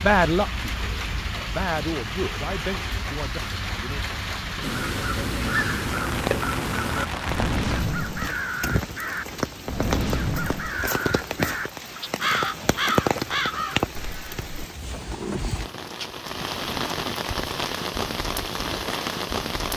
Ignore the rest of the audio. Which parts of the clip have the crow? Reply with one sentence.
The crow can be heard from 4.6 to 14.5 s.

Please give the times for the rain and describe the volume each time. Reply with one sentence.
The rain can be heard from 0.0 to 19.7 s, at a steady volume.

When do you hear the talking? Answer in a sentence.
You can hear the talking from 0.0 to 4.0 s.